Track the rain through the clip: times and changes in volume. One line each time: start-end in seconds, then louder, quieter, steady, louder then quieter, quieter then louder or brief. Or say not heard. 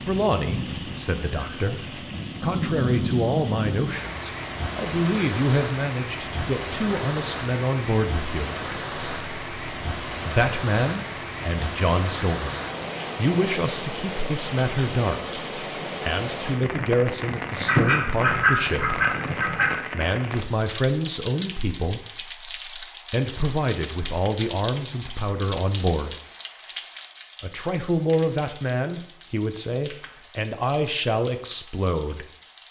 0.0-32.6 quieter.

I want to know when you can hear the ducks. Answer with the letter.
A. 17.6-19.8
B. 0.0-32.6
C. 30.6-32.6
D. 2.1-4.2
A.